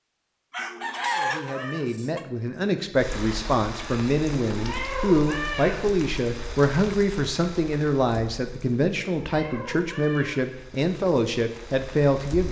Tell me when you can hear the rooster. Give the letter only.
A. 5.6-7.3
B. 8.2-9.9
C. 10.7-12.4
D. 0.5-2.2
D.